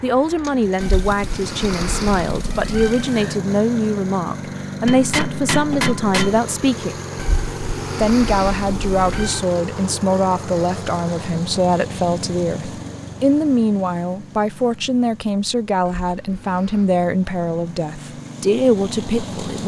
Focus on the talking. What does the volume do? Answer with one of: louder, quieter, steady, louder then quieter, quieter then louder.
steady.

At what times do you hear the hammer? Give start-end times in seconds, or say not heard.
4.8-6.4.